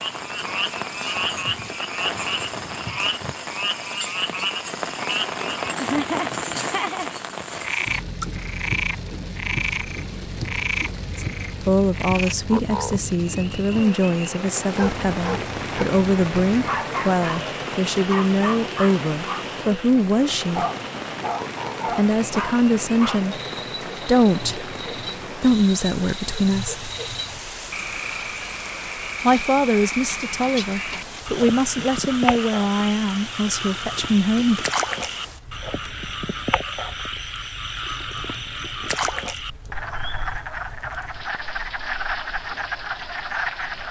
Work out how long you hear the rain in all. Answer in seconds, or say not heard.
44 s.